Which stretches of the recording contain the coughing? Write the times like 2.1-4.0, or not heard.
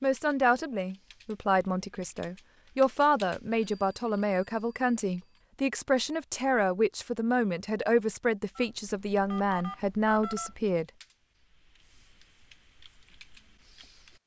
not heard.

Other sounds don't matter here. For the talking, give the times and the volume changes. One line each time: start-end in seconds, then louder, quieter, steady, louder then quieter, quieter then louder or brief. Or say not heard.
0.0-10.8 steady.